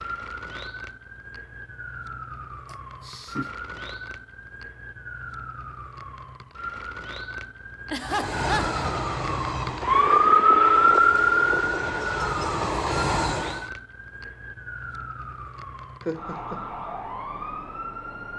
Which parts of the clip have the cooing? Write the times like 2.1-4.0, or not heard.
not heard.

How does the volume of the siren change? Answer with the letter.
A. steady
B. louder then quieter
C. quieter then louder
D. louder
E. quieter
B.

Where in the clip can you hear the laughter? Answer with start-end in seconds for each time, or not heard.
2.6-3.5, 7.8-8.8, 16.1-16.6.